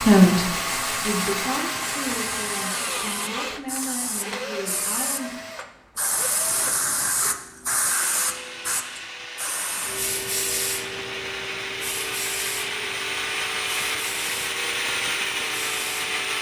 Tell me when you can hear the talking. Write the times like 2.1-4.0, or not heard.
0.0-5.3.